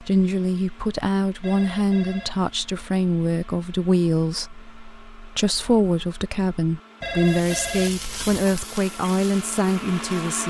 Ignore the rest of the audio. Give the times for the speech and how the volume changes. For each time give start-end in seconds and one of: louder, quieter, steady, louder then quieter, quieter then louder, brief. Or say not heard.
0.0-10.4 steady.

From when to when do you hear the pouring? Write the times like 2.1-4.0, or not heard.
not heard.